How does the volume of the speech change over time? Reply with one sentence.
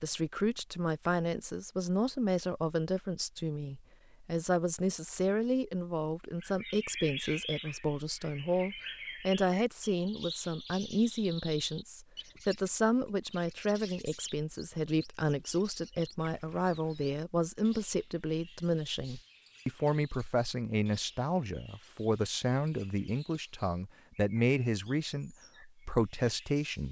The loudness of the speech stays about the same.